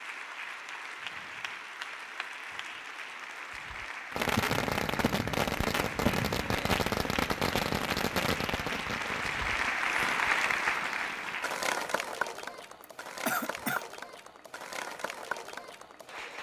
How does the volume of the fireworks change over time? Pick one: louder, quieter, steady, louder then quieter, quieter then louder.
quieter.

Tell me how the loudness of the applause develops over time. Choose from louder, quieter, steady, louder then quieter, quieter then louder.
louder then quieter.